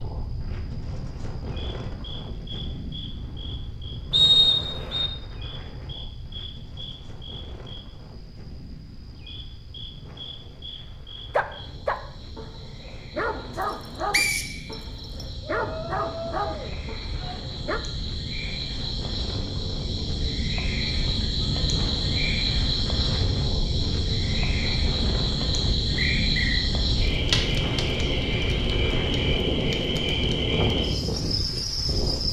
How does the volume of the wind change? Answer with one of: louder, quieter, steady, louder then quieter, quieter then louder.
quieter then louder.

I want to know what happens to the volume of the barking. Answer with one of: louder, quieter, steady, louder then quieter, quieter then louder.
steady.